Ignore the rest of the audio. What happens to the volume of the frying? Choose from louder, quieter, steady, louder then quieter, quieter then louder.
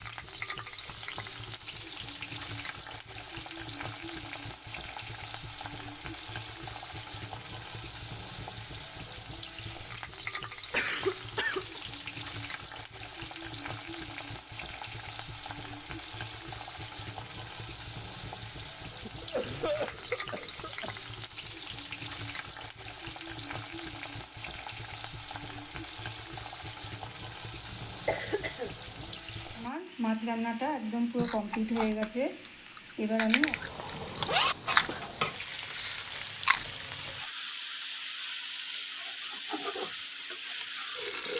louder.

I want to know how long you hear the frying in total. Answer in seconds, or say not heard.
41 s.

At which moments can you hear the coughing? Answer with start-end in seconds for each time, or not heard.
10.7-11.8, 19.1-20.9, 28.1-29.2.